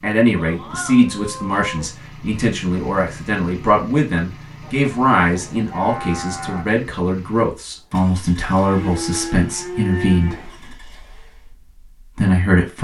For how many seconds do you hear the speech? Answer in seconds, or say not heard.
13 s.